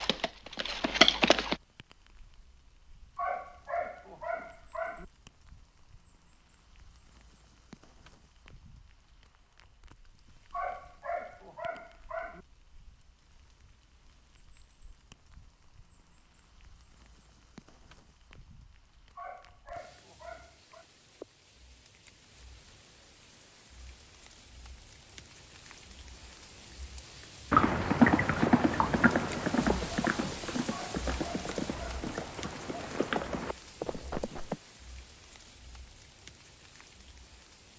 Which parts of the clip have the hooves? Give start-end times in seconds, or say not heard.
0.0-1.6, 27.5-34.6.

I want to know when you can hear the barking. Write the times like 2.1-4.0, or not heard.
3.1-5.0, 10.5-12.4, 19.1-20.9, 30.7-32.0.